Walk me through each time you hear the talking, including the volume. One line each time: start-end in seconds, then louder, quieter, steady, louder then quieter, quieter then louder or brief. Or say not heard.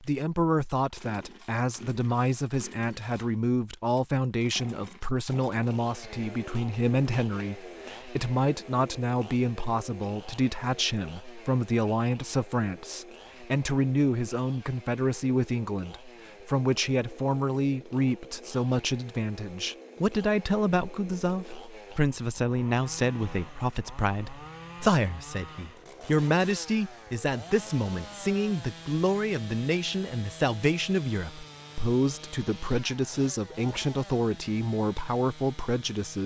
0.0-36.2 steady.